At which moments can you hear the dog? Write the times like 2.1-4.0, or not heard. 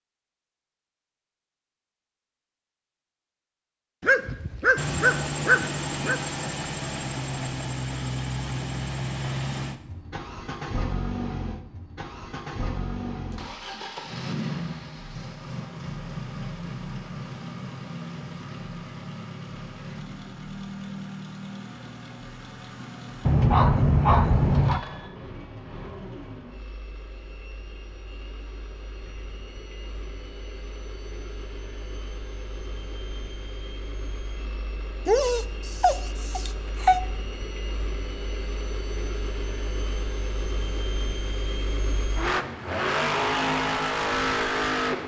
4.0-6.2, 23.2-24.9, 35.0-37.0.